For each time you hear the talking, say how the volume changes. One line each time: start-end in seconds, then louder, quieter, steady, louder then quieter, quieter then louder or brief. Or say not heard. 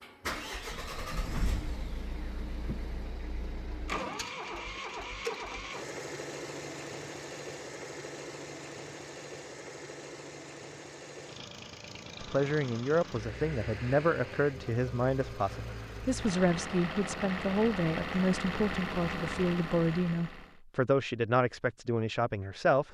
12.2-22.8 steady.